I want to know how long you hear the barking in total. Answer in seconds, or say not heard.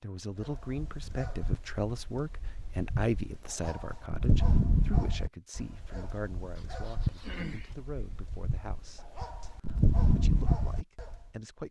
11 s.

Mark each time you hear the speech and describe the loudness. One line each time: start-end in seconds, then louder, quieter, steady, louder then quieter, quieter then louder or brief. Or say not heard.
0.0-11.6 quieter.